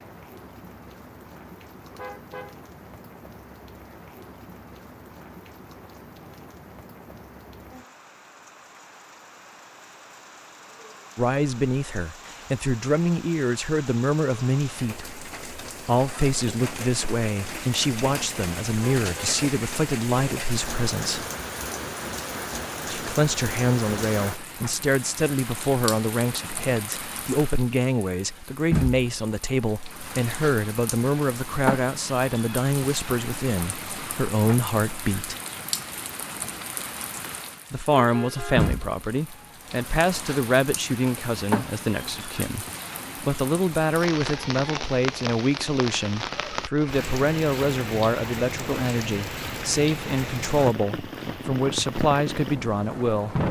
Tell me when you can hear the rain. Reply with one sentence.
You can hear the rain from 0.0 to 53.4 s.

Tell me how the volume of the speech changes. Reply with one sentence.
The loudness of the speech stays about the same.